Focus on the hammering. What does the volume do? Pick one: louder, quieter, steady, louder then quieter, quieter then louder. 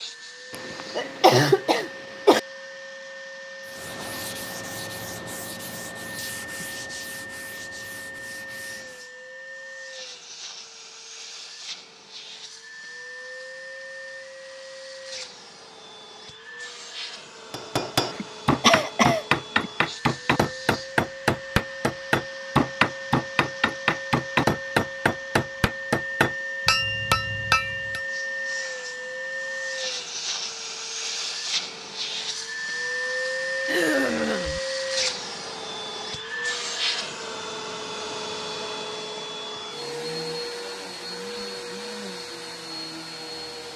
steady.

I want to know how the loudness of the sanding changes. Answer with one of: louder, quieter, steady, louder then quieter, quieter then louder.
quieter.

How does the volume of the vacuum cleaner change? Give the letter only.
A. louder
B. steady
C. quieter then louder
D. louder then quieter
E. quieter
A.